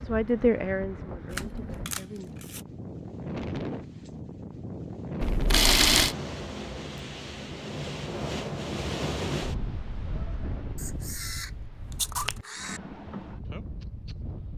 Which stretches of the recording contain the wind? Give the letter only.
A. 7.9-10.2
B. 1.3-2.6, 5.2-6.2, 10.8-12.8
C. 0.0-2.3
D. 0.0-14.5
D.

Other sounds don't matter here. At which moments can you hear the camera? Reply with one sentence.
The camera can be heard from 1.3 to 2.6 s, from 5.2 to 6.2 s and from 10.8 to 12.8 s.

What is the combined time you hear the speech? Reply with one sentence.
You can hear the speech for 2 seconds altogether.